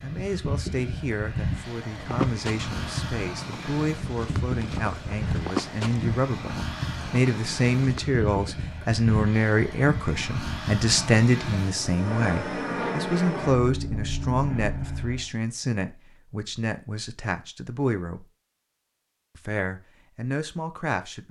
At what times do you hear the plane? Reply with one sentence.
You can hear the plane from 0.0 to 15.2 s.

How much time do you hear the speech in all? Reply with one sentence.
You can hear the speech for 20 seconds altogether.